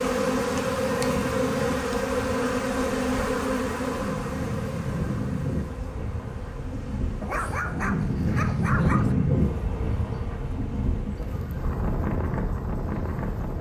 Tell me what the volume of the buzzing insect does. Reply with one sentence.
The loudness of the buzzing insect goes down.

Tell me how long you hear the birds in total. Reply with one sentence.
The birds can't be heard in this clip.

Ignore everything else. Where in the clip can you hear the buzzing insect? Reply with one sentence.
The buzzing insect can be heard from 0.0 to 13.5 s.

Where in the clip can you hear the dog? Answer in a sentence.
The dog can be heard from 7.2 to 9.2 s.